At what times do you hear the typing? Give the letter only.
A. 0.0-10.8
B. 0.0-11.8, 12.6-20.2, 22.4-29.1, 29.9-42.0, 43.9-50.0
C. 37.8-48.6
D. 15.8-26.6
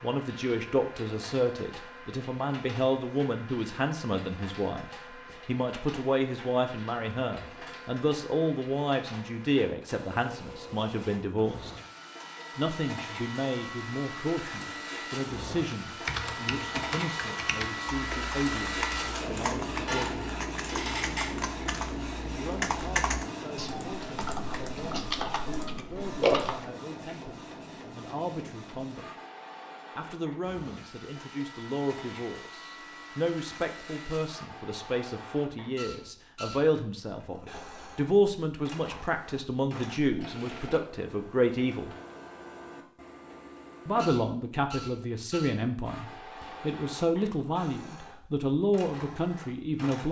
D.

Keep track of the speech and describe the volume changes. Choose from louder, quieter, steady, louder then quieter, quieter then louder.
quieter then louder.